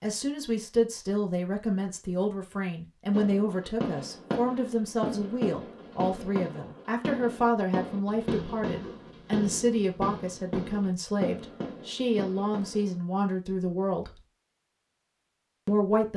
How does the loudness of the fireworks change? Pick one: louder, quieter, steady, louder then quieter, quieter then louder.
steady.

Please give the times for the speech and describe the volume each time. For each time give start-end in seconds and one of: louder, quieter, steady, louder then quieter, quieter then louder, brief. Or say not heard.
0.0-14.2 steady
15.7-16.1 brief.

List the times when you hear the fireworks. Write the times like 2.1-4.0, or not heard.
3.1-13.0.